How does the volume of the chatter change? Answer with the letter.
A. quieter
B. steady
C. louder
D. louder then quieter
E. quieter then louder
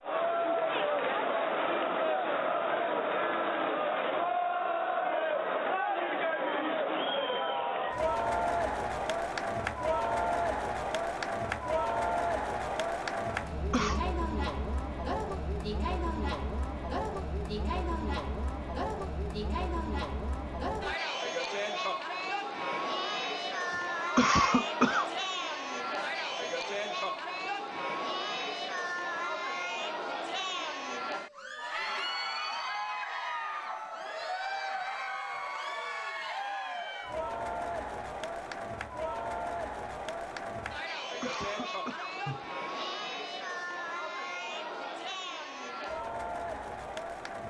A.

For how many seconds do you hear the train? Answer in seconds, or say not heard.
not heard.